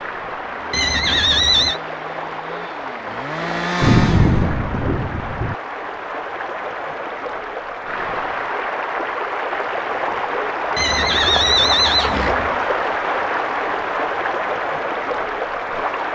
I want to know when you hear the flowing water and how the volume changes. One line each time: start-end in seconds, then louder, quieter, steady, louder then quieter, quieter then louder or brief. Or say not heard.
0.0-16.1 louder.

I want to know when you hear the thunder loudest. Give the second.
4 s.